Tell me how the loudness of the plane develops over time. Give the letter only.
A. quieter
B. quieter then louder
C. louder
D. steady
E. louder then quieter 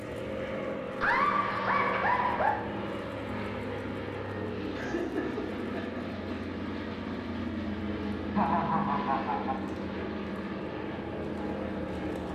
D.